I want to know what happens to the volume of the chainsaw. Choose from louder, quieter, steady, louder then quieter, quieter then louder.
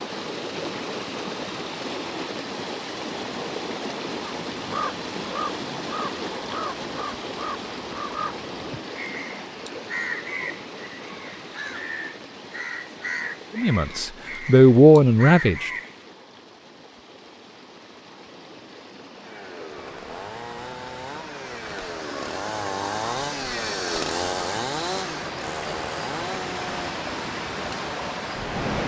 louder then quieter.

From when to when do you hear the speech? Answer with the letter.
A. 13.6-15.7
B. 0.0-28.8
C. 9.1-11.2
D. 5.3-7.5
A.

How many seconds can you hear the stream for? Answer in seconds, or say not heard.
29 s.